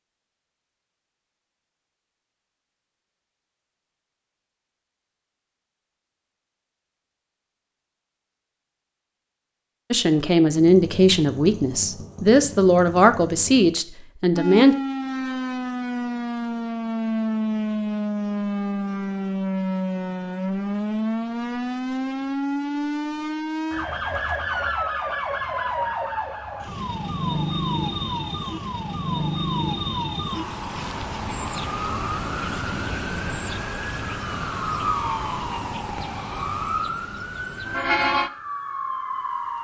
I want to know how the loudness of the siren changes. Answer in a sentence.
The volume of the siren stays about the same.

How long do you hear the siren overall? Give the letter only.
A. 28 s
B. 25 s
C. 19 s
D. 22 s
B.